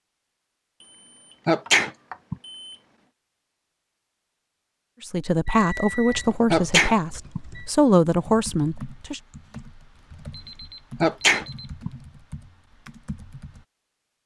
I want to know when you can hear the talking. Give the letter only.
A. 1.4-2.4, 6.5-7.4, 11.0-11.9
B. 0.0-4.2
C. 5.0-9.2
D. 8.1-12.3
C.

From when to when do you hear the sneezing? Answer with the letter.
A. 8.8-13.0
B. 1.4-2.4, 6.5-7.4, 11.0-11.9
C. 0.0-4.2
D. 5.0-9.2
B.